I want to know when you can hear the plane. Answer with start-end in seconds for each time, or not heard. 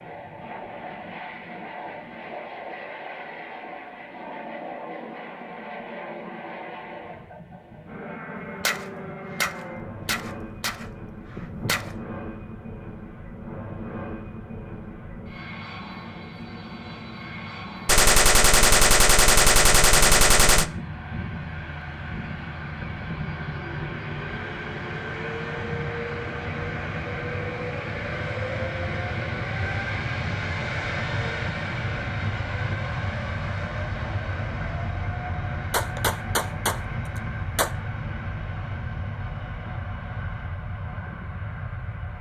0.0-42.1.